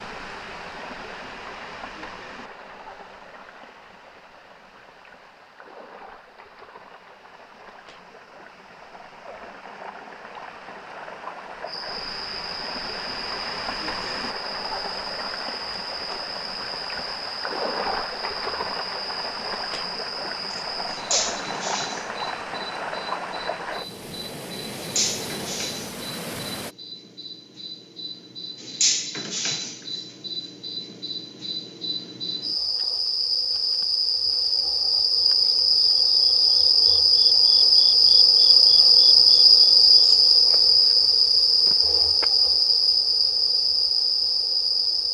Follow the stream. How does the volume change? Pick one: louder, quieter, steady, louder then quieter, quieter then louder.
louder.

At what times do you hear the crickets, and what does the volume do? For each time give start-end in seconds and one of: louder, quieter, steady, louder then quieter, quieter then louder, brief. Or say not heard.
11.7-45.0 louder.